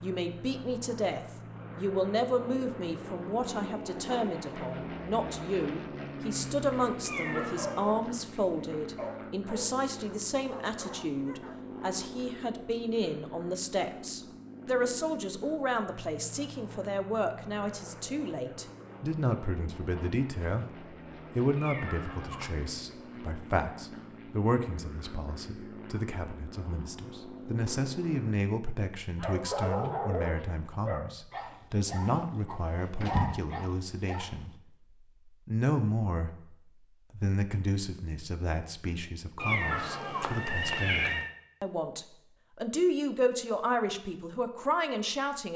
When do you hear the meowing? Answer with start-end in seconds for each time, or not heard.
7.0-7.9, 21.6-22.6, 39.4-41.3.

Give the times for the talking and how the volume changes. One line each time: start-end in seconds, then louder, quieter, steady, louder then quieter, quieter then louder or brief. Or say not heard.
0.0-34.5 steady
35.2-45.5 quieter then louder.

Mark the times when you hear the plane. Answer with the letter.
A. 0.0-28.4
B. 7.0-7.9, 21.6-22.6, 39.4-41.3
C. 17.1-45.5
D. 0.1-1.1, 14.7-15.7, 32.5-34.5
A.